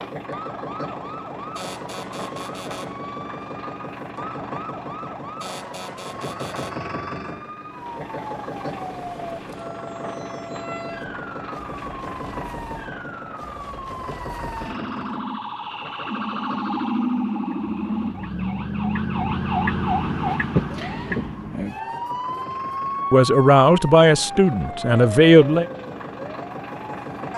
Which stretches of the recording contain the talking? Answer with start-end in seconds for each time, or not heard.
23.1-25.6.